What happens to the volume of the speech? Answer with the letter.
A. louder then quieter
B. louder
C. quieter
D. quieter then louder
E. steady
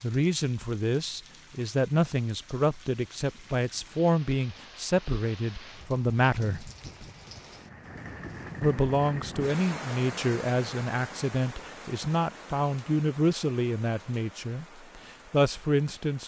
E.